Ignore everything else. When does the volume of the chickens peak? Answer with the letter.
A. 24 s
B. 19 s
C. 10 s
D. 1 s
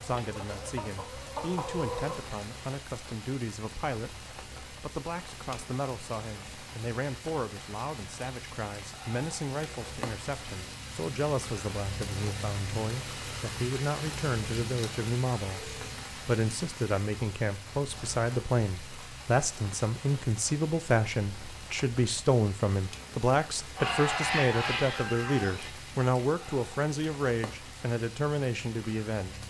A.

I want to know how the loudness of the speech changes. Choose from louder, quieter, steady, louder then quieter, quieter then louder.
louder.